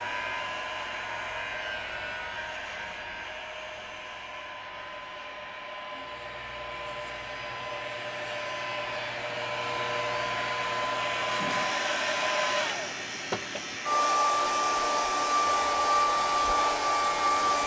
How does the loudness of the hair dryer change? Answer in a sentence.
The volume of the hair dryer goes up.